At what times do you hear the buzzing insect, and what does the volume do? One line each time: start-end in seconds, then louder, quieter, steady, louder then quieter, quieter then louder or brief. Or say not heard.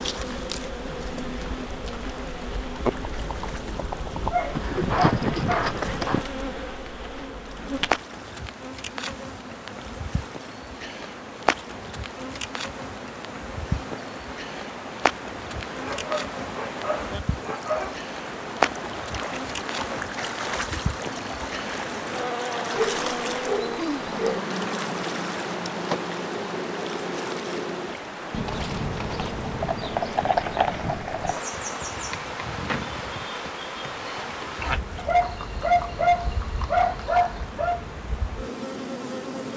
0.0-39.5 steady.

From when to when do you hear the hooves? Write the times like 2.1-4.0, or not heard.
0.0-6.2, 28.2-37.5.